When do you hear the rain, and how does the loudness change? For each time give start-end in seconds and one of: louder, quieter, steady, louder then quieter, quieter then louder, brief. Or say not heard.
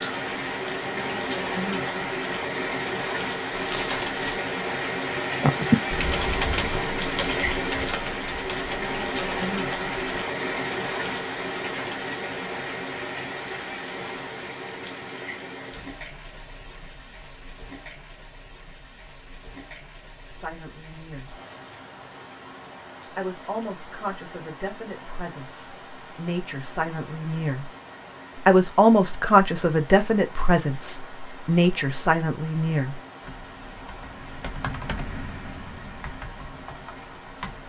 0.0-37.6 quieter.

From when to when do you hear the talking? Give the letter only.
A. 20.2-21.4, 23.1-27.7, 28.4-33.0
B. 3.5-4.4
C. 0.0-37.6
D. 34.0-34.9
A.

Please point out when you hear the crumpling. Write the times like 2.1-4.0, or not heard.
3.5-4.4.